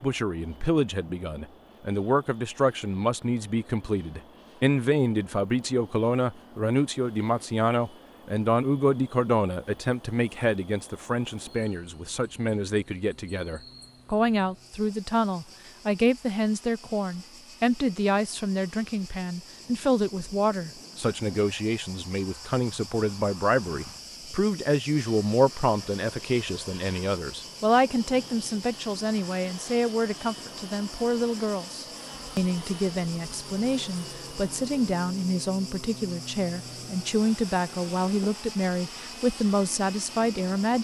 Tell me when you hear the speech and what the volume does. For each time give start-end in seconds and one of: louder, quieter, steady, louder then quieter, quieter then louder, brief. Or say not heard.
0.0-40.7 steady.